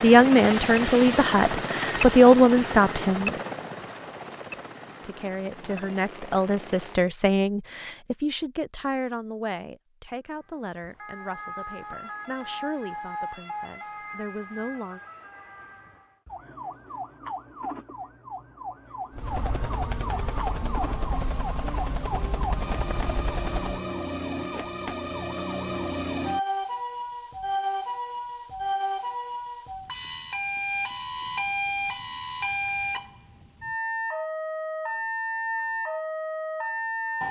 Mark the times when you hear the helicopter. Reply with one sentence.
You can hear the helicopter from 0.0 to 7.0 s and from 19.1 to 23.9 s.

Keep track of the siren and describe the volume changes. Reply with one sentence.
The volume of the siren goes up.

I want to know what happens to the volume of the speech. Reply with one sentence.
The volume of the speech goes down.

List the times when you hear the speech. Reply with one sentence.
The speech can be heard from 0.0 to 3.4 s and from 5.0 to 15.0 s.